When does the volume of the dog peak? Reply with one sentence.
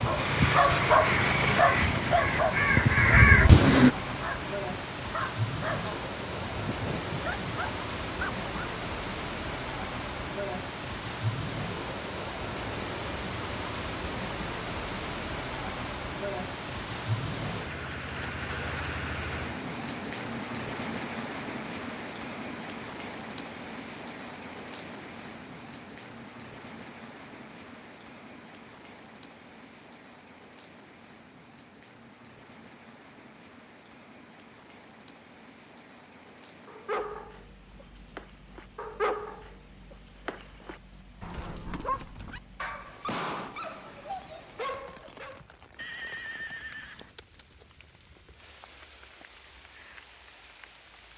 The volume of the dog peaks at 1 second.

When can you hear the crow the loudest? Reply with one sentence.
The volume of the crow peaks at 3 seconds.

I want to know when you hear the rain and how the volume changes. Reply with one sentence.
The rain can be heard from 0.0 to 51.1 s, getting quieter.